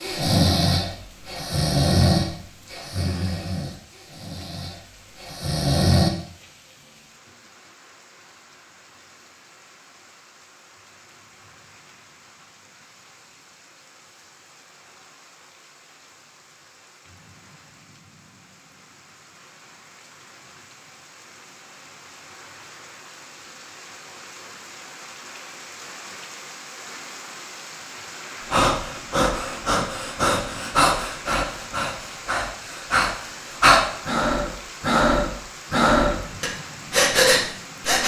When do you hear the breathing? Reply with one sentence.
You can hear the breathing from 0.0 to 6.1 s and from 28.5 to 38.0 s.